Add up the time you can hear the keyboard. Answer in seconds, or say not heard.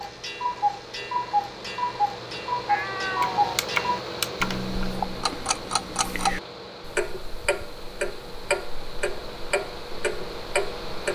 2 s.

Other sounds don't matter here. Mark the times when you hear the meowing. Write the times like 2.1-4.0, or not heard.
2.6-3.6.